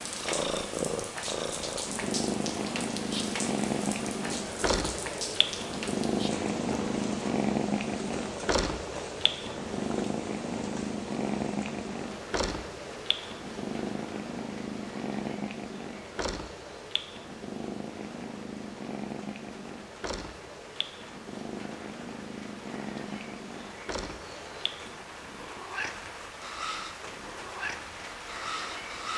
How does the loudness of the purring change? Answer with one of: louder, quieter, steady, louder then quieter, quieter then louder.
quieter.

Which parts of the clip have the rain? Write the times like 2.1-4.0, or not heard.
0.0-29.1.